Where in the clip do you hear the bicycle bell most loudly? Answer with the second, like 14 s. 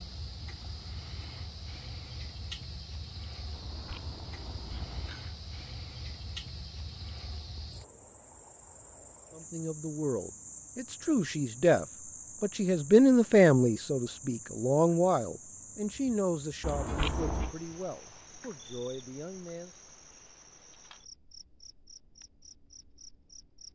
17 s.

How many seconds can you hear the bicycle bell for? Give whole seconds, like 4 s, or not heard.
3 s.